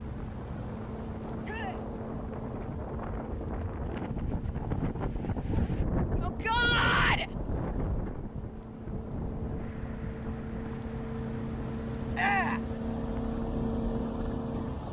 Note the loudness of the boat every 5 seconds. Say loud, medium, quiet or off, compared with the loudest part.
medium, medium, loud.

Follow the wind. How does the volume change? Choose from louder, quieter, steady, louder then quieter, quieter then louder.
louder then quieter.